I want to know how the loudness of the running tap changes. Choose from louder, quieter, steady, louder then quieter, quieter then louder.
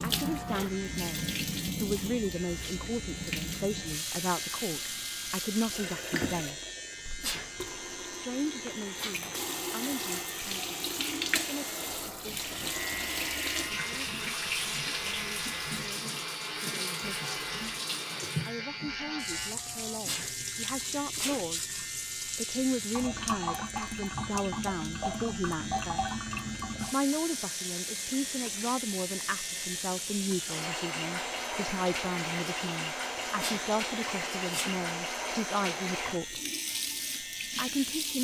steady.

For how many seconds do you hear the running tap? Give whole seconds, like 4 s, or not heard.
38 s.